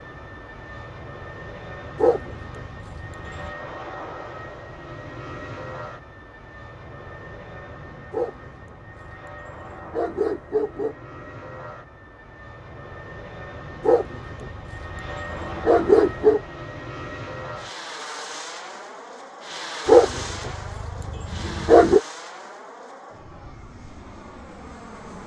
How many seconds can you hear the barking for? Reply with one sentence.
The barking can be heard for 9 seconds in total.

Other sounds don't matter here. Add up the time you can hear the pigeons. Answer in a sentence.
You can't hear the pigeons here.